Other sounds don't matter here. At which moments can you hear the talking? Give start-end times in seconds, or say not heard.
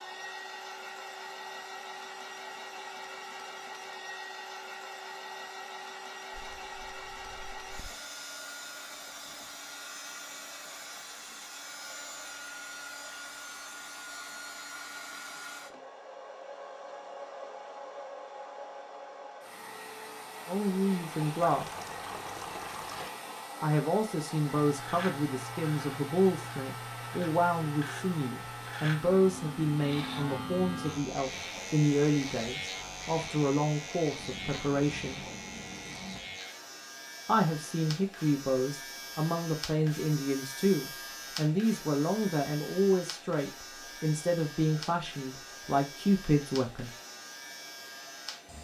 20.4-21.6, 23.6-35.2, 37.2-47.0.